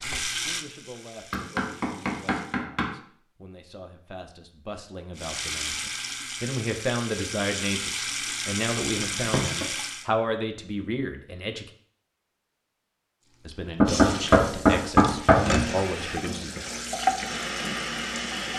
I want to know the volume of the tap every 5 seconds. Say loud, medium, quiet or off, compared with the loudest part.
medium, loud, medium, loud.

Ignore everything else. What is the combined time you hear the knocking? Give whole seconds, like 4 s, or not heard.
4 s.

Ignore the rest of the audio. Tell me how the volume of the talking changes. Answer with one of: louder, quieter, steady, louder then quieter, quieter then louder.
louder.